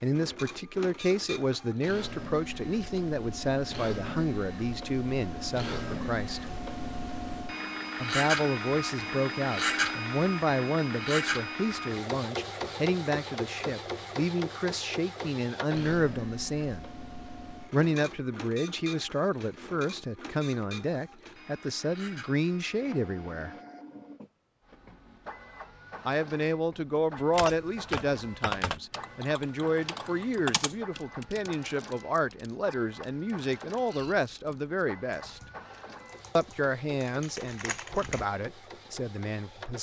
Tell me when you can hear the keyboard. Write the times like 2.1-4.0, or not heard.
27.1-38.2.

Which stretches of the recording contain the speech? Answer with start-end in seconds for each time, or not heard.
0.0-6.5, 8.0-16.9, 17.7-23.6, 26.1-35.4, 36.4-39.7.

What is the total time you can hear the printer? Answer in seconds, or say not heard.
40 s.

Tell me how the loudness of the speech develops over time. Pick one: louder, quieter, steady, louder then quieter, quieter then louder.
steady.